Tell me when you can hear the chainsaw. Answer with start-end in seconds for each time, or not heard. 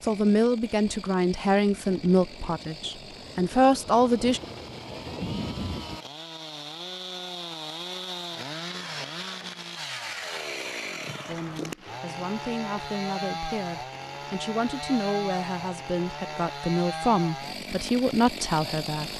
0.0-19.1.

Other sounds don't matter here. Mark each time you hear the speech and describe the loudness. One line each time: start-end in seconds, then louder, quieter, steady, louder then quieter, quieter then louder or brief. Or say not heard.
0.0-4.4 quieter then louder
11.2-19.1 louder.